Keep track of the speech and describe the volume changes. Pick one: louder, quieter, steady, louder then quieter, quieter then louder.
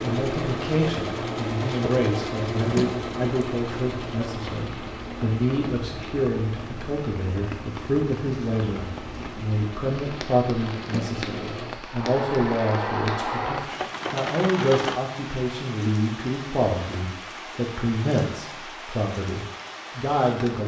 steady.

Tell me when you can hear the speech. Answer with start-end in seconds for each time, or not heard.
0.0-20.6.